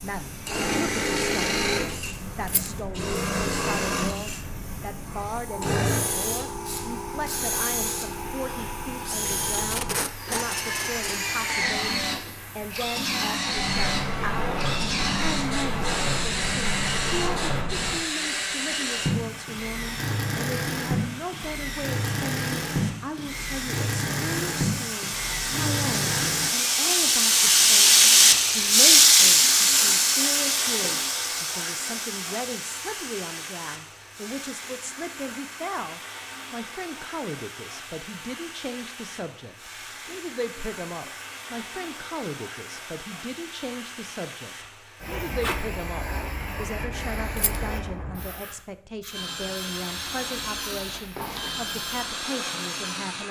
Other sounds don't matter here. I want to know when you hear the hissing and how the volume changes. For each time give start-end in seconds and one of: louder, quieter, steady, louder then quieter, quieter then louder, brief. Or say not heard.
0.0-53.2 louder then quieter.